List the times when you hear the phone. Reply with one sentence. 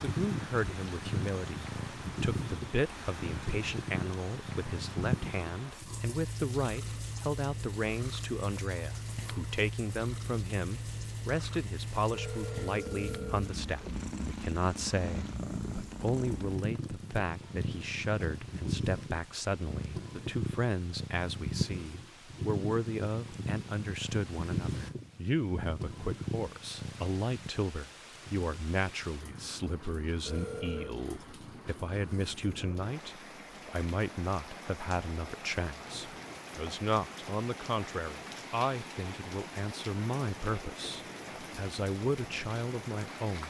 The phone can be heard from 12.1 to 13.5 s and from 30.2 to 31.0 s.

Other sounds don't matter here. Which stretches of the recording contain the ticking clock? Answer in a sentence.
The ticking clock can't be heard in this clip.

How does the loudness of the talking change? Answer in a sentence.
The volume of the talking stays about the same.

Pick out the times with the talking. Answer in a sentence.
You can hear the talking from 0.0 to 43.4 s.